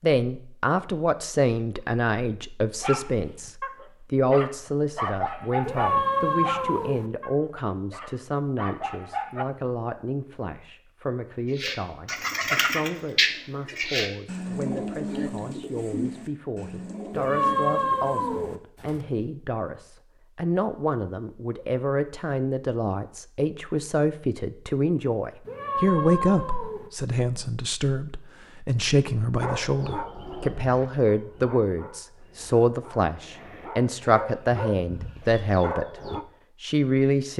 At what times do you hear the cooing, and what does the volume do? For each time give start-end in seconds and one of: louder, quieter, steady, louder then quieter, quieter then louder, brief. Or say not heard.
11.6-19.2 quieter.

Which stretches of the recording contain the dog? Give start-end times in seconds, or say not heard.
2.8-9.4, 29.4-36.2.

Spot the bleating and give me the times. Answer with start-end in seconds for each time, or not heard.
not heard.